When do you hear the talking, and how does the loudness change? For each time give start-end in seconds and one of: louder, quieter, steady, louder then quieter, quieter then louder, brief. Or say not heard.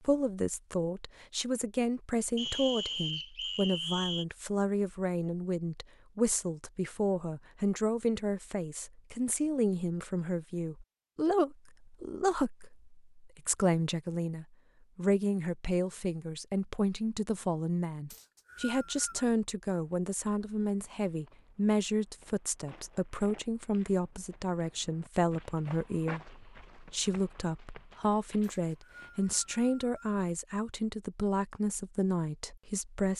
0.1-33.1 steady.